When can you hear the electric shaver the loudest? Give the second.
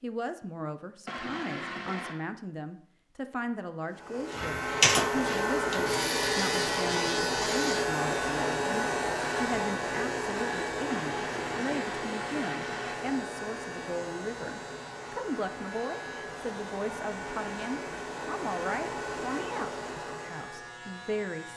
5 s.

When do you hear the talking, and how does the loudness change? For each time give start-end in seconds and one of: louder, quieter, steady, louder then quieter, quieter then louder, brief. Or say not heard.
0.0-21.5 steady.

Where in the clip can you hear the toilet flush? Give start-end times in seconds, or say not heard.
1.1-2.1, 10.9-13.0.